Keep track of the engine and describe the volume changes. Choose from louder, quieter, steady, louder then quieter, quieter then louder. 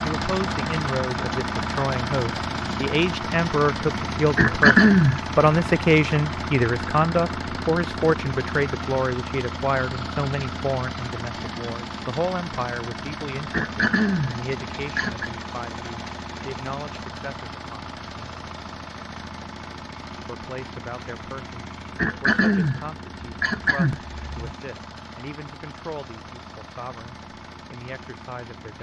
quieter.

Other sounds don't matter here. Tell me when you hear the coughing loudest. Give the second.
5 s.